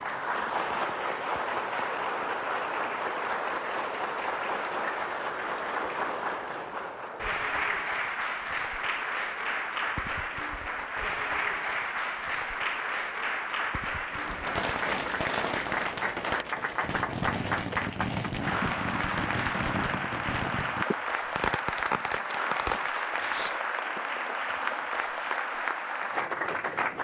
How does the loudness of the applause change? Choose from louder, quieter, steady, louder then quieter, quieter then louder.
steady.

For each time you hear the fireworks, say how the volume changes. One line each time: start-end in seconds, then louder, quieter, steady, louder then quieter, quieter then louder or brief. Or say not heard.
14.1-24.0 steady.